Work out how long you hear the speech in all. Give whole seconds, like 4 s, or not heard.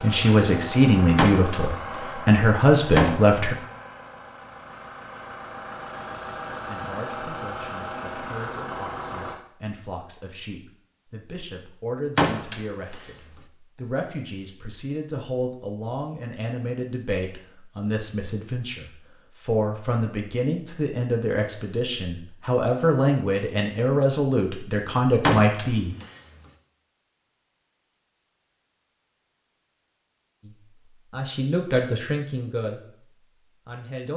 27 s.